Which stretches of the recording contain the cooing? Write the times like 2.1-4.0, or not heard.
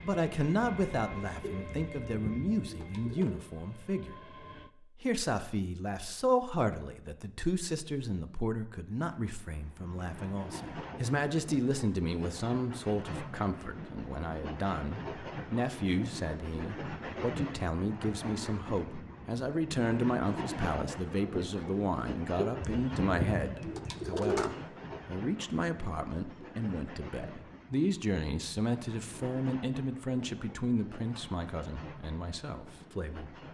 1.4-3.4, 22.4-24.5.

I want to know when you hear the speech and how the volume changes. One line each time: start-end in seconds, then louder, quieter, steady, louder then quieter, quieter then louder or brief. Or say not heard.
0.0-33.2 steady.